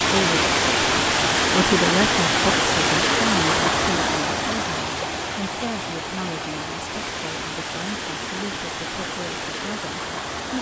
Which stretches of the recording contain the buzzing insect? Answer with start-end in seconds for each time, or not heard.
not heard.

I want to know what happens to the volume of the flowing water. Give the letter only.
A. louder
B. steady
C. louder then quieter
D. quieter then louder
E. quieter
E.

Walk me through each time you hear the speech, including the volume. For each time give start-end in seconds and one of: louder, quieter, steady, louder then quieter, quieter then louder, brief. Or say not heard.
0.0-10.5 quieter.